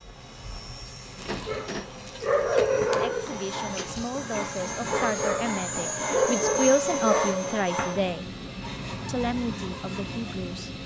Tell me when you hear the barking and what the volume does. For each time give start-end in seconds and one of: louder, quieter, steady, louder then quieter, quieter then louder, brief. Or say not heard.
1.2-7.5 quieter then louder.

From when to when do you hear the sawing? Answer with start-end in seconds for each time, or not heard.
3.2-10.6.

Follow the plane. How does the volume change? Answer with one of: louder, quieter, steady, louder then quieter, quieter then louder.
louder then quieter.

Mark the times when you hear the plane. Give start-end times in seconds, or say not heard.
0.0-10.8.